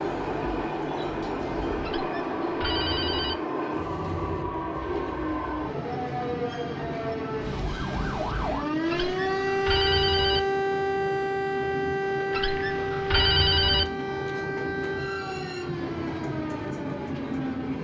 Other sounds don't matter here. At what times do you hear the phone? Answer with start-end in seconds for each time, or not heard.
1.8-3.4, 8.8-10.4, 12.3-13.8.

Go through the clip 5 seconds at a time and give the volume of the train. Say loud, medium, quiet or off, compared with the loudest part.
loud, medium, medium, loud.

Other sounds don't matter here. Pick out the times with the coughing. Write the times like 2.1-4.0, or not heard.
not heard.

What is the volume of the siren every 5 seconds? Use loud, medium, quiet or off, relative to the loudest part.
medium, loud, loud, medium.